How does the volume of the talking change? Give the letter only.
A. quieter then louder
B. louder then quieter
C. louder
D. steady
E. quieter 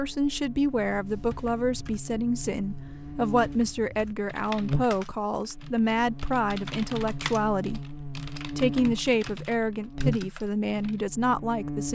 D.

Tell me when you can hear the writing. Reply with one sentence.
You can't hear the writing here.